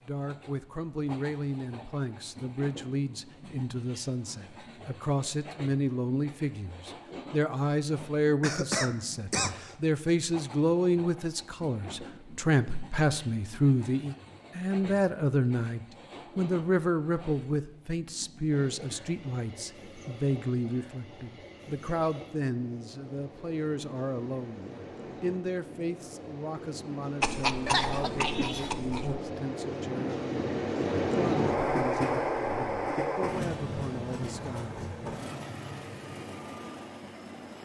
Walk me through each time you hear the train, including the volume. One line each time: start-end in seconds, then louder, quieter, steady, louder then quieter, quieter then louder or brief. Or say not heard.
0.0-37.6 louder.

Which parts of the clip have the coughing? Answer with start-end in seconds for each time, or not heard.
8.4-9.8, 27.2-29.2.